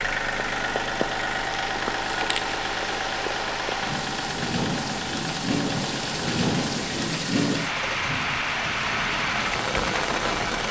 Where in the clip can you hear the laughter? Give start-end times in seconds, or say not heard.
not heard.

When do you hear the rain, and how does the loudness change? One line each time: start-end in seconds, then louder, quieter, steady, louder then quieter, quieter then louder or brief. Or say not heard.
0.0-10.6 louder.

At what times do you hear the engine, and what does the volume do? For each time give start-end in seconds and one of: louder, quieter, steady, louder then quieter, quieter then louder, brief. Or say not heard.
0.0-10.6 quieter.